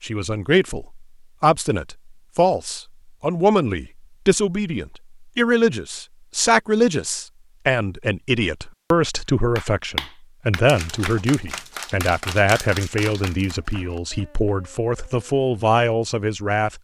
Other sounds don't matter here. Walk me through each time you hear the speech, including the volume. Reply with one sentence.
The speech can be heard from 0.0 to 16.8 s, at a steady volume.